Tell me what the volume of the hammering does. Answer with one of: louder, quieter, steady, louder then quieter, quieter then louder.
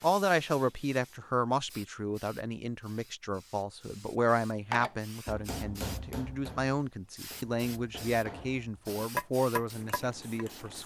quieter then louder.